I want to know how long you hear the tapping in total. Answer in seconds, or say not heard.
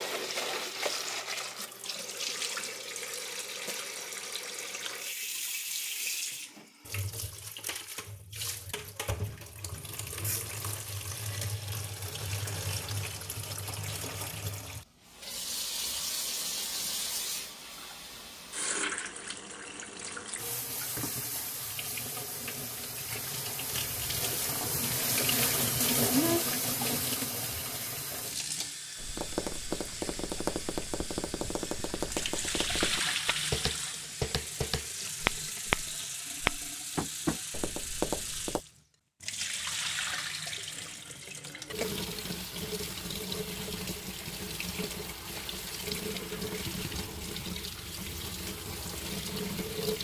10 s.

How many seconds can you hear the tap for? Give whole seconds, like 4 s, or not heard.
50 s.